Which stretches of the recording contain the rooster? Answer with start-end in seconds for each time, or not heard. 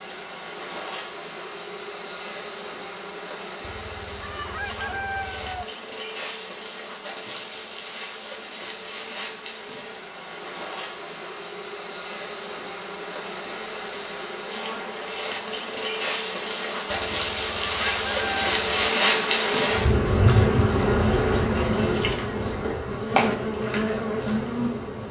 3.6-5.7, 16.9-18.9.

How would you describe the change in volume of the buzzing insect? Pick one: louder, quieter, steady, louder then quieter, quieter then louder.
louder.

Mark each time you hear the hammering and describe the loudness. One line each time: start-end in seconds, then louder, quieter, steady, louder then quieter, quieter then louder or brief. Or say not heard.
not heard.